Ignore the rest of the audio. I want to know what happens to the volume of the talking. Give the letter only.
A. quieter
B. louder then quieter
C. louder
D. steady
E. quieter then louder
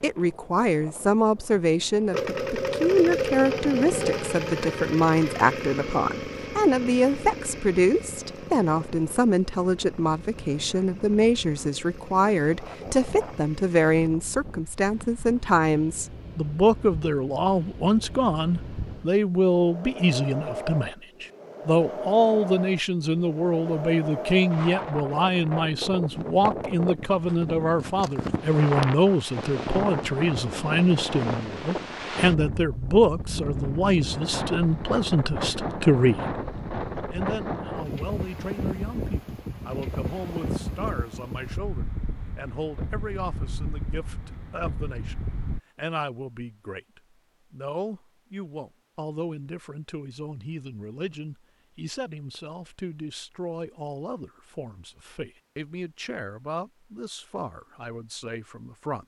A.